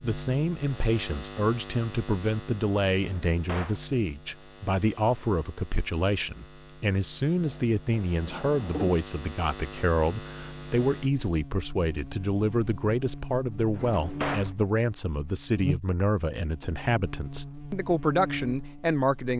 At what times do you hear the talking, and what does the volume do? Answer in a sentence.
You can hear the talking from 0.0 to 19.3 s, at a steady volume.